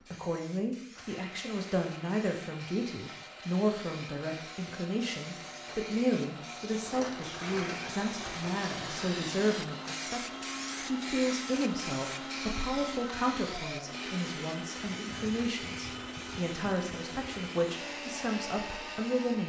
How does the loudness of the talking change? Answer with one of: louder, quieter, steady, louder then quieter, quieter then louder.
steady.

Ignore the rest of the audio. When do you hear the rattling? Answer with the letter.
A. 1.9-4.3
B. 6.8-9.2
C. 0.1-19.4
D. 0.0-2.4
B.